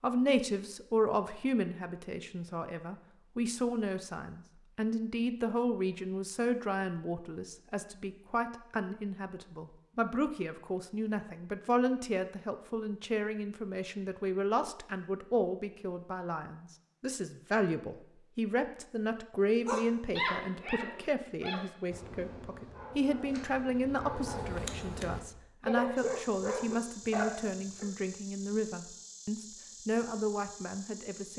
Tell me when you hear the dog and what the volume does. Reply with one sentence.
You can hear the dog from 19.6 to 27.9 s, getting quieter then louder.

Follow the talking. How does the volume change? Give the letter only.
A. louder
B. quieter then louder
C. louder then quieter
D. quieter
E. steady
E.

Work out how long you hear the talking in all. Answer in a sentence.
The talking can be heard for 31 seconds in total.